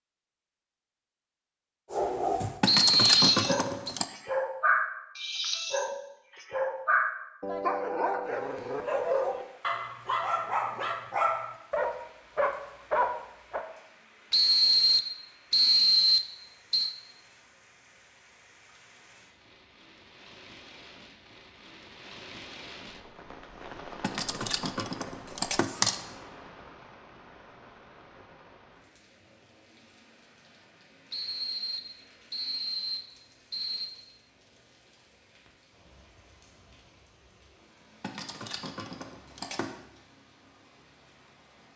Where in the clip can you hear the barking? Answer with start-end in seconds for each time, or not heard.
1.9-13.7.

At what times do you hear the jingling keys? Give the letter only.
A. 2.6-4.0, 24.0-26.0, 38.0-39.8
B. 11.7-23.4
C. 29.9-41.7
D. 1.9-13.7
A.